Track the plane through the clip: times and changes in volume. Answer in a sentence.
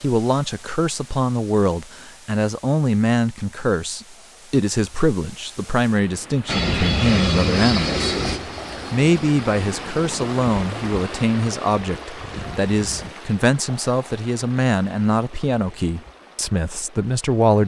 You can hear the plane from 6.5 to 13.2 s, getting quieter.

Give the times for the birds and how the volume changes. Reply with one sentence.
You can't hear the birds here.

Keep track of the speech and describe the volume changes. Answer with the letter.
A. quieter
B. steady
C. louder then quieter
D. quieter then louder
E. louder
B.